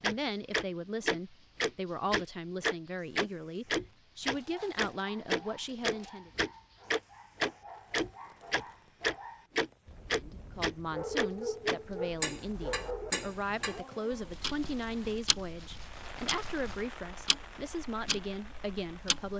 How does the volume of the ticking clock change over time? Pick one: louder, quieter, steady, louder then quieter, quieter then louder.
quieter.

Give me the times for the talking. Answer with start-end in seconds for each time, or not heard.
0.0-6.3, 10.2-19.3.